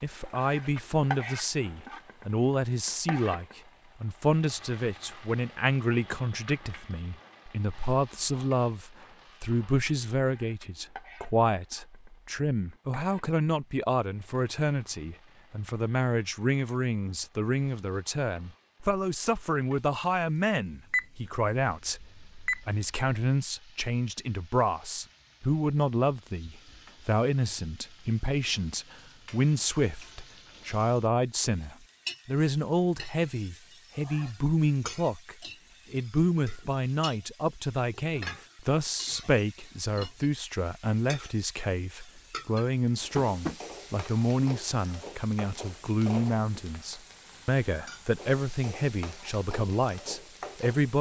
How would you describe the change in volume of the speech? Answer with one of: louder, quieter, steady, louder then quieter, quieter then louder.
steady.